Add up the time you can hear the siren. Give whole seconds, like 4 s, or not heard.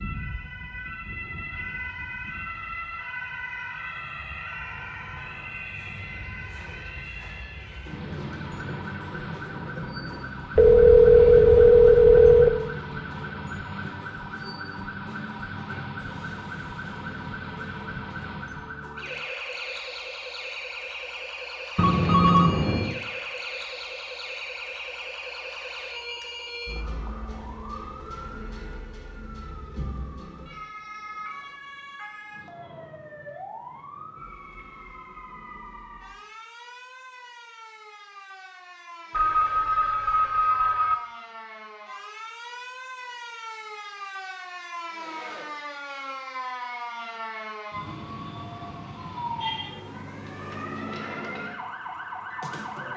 53 s.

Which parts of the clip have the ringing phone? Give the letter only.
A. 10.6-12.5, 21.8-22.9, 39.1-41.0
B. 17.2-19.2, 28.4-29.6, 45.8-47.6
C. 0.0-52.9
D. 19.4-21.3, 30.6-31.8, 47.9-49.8
A.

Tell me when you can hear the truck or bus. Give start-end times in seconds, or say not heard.
not heard.